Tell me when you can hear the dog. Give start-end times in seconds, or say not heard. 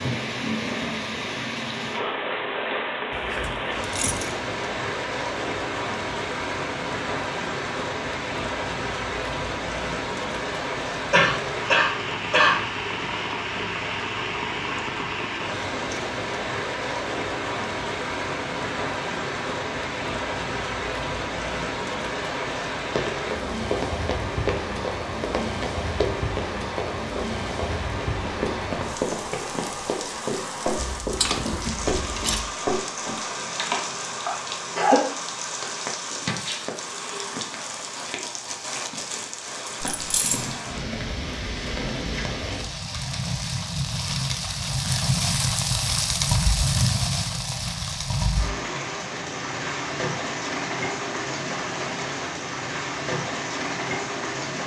not heard.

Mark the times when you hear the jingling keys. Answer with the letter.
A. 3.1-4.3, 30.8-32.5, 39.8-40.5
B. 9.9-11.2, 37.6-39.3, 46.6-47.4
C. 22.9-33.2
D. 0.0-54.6
A.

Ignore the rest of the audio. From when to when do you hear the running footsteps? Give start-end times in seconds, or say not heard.
22.9-33.2.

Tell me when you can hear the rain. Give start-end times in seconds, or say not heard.
0.0-54.6.